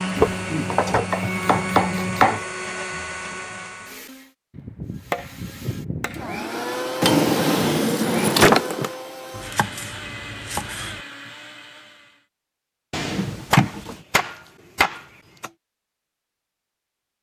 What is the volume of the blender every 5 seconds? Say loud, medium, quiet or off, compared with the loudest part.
loud, loud, medium, off.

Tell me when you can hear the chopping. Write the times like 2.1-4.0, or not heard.
0.1-2.5, 4.5-6.4, 9.3-11.0, 13.5-15.5.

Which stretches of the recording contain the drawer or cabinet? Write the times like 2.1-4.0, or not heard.
0.2-1.1, 7.0-8.9, 12.9-13.9.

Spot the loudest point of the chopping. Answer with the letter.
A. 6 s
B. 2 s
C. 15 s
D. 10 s
B.